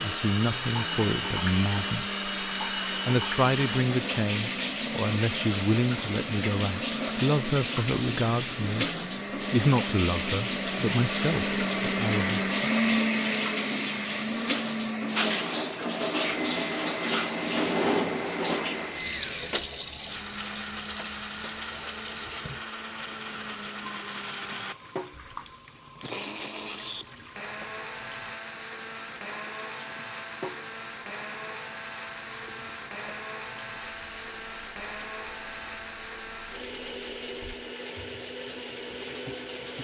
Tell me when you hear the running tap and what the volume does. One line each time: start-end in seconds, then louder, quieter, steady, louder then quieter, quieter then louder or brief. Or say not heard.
0.0-39.7 quieter.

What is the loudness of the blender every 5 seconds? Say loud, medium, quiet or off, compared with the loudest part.
medium, medium, loud, medium, medium, medium, medium, medium.